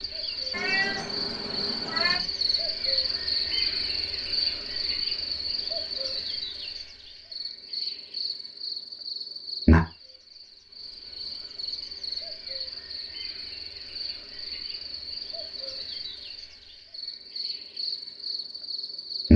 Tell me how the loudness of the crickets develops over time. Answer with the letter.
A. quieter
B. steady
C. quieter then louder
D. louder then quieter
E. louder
A.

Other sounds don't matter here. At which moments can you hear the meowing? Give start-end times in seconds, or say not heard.
0.5-2.2.